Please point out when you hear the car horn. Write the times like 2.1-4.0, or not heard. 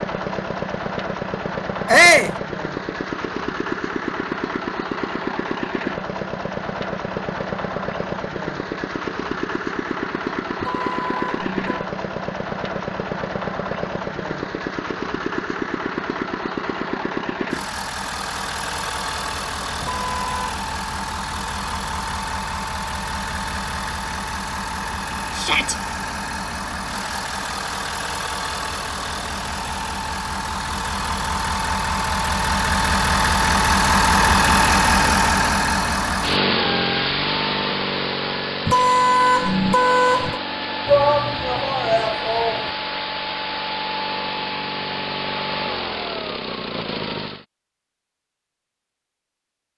10.6-11.9, 19.8-20.6, 38.6-40.4.